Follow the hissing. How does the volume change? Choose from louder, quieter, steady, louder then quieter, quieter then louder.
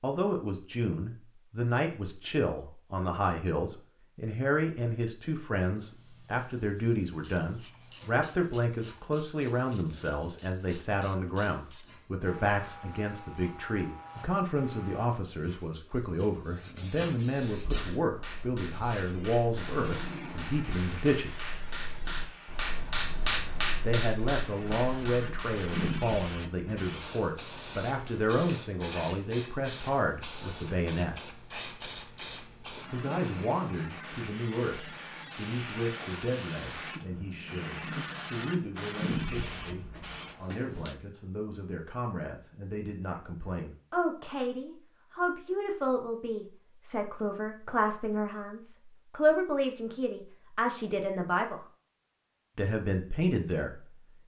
louder.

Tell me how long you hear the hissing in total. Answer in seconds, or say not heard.
35 s.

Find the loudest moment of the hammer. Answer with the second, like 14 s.
23 s.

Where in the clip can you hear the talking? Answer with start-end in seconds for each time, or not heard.
0.0-21.4, 23.8-31.2, 32.9-51.6, 52.5-54.0.